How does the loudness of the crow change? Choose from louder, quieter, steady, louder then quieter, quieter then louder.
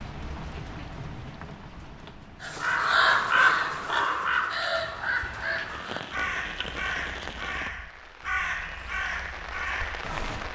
quieter.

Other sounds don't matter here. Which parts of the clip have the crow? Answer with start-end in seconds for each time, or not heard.
2.4-10.4.